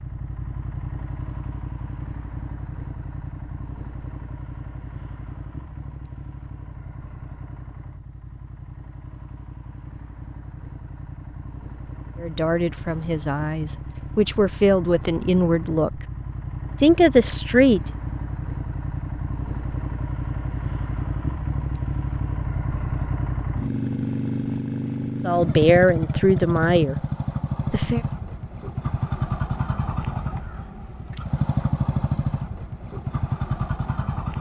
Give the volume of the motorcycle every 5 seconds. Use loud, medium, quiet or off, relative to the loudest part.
medium, quiet, quiet, medium, loud, loud, loud.